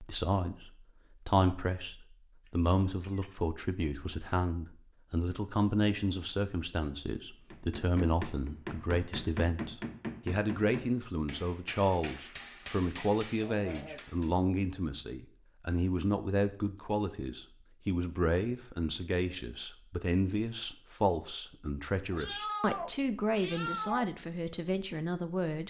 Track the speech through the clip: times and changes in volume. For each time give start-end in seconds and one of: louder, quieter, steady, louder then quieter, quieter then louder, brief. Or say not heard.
0.0-25.6 steady.